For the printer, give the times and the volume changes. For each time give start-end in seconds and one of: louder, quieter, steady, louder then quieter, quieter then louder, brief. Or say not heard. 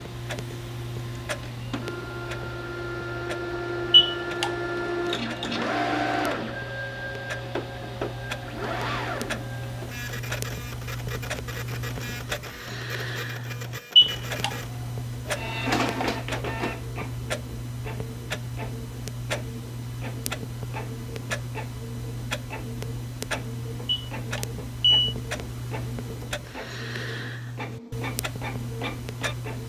0.0-29.6 quieter.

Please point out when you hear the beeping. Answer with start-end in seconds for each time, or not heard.
3.9-4.5, 13.9-14.5, 23.9-25.1.